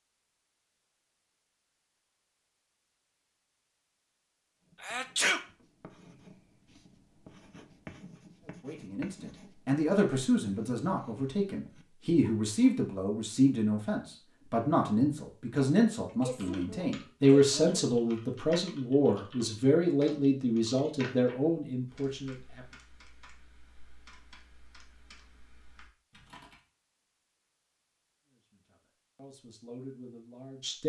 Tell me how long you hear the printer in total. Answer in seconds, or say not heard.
not heard.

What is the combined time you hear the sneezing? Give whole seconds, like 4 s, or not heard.
2 s.